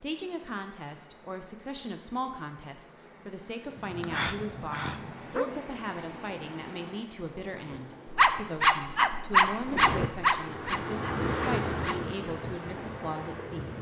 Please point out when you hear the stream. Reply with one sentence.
The stream can be heard from 0.0 to 13.7 s.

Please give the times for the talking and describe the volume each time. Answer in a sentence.
You can hear the talking from 0.0 to 13.7 s, at a steady volume.